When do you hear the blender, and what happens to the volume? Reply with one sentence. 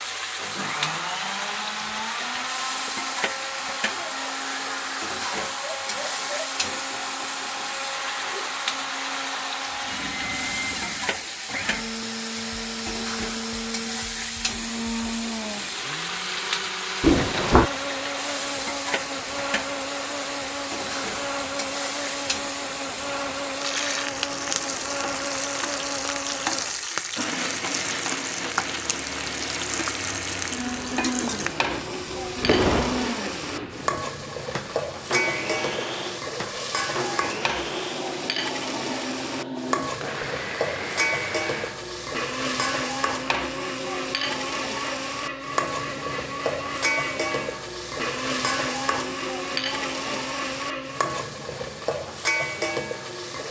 The blender can be heard from 0.0 to 51.1 s, at a steady volume.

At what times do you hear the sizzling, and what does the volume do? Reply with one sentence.
You can hear the sizzling from 0.0 to 53.4 s, at a steady volume.